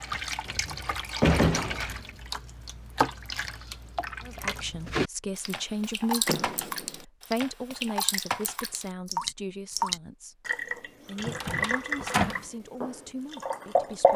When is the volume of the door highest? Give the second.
1 s.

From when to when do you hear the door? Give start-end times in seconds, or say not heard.
0.5-2.2, 6.2-7.0, 11.2-12.4.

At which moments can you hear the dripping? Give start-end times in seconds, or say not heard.
0.0-14.1.